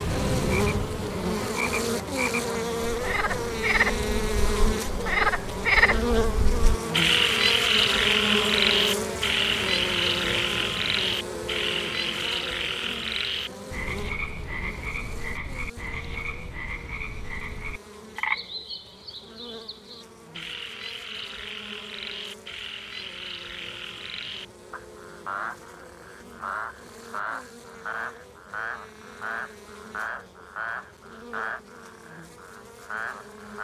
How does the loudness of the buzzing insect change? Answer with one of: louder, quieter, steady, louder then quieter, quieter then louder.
quieter.